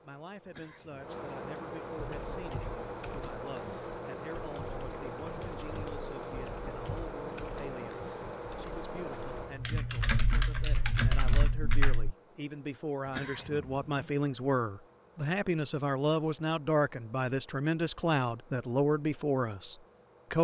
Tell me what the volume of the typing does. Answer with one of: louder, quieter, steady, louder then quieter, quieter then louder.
louder.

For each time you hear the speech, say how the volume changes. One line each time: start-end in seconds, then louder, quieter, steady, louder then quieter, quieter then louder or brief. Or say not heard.
0.0-20.3 louder.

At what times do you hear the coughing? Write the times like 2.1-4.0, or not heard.
0.5-1.1, 13.1-14.1.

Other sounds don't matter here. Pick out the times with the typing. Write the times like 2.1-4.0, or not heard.
1.9-12.2.